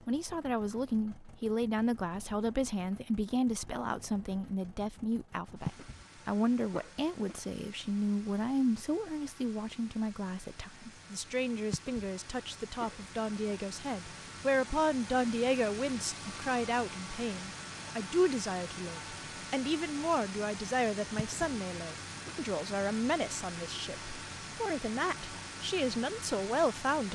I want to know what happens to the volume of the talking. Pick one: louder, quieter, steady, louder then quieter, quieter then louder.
steady.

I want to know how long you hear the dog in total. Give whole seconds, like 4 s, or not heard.
not heard.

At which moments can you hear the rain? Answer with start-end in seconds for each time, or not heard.
not heard.